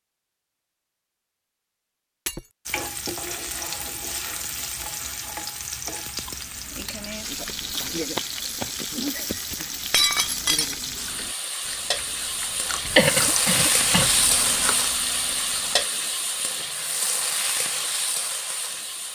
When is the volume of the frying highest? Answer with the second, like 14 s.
14 s.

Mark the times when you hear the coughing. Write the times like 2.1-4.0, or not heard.
12.8-14.3.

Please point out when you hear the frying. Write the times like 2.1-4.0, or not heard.
2.6-19.1.